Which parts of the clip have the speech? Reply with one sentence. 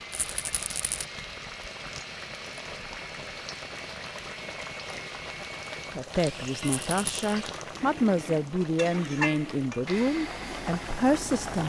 You can hear the speech from 6.0 to 11.6 s.